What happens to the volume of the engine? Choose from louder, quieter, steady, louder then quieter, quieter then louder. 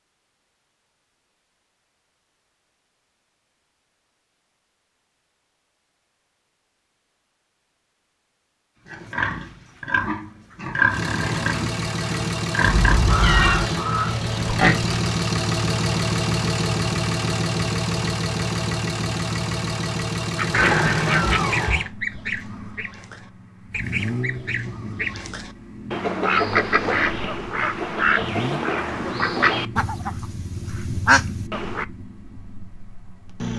quieter.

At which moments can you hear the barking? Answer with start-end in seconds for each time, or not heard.
not heard.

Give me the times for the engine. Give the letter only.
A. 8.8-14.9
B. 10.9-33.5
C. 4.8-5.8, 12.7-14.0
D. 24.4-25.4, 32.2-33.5
B.